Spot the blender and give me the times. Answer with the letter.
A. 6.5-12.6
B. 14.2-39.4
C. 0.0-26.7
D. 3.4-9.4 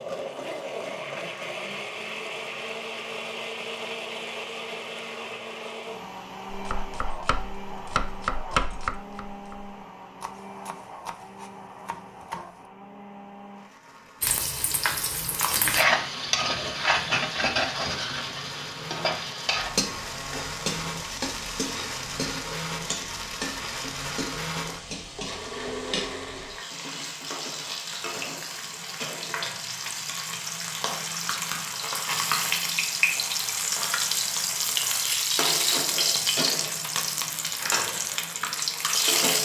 C.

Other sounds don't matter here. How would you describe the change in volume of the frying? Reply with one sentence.
The volume of the frying goes down, then up.